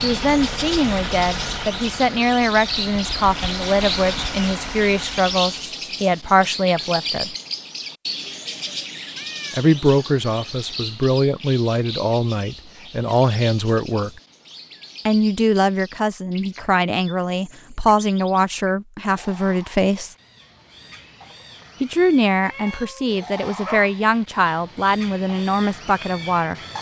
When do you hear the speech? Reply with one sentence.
The speech can be heard from 0.0 to 7.3 s, from 9.5 to 14.1 s, from 15.1 to 20.1 s and from 21.8 to 26.6 s.